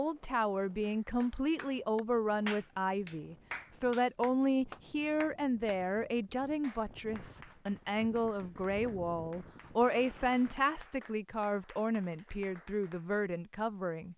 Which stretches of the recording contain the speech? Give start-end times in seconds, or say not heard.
0.0-14.1.